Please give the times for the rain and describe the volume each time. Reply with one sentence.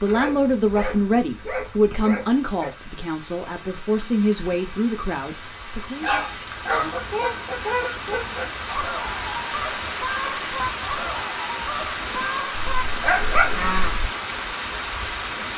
You can hear the rain from 0.0 to 15.5 s, getting louder.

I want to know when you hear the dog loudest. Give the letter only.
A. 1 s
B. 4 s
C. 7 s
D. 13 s
D.